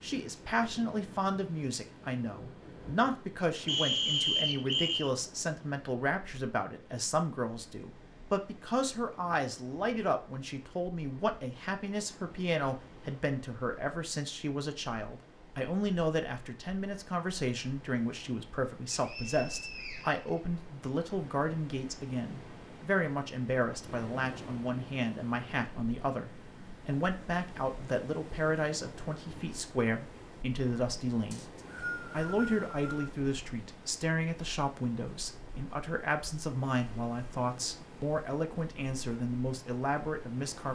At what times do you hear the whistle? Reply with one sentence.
The whistle can be heard from 3.6 to 5.1 s, from 18.9 to 20.4 s and from 31.3 to 33.1 s.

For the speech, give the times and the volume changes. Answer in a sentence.
The speech can be heard from 0.0 to 31.4 s, at a steady volume; and from 32.1 to 40.7 s, at a steady volume.